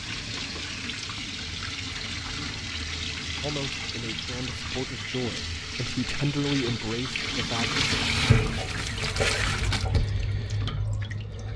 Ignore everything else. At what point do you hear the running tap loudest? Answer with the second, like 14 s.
8 s.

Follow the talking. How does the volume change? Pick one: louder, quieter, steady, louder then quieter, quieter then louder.
louder then quieter.